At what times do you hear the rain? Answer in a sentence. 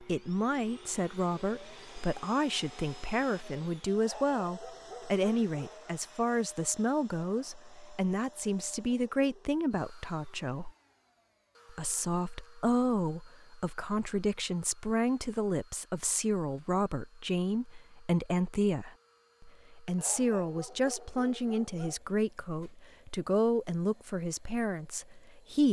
You can't hear the rain here.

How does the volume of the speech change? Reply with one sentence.
The loudness of the speech stays about the same.